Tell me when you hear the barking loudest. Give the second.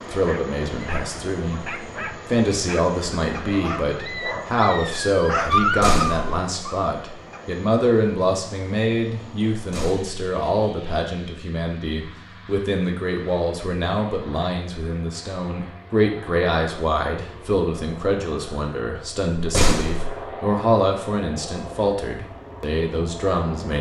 6 s.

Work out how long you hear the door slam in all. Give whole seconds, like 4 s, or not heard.
2 s.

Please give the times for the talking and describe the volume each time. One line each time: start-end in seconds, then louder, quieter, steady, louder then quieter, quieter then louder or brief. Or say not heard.
0.1-23.7 steady.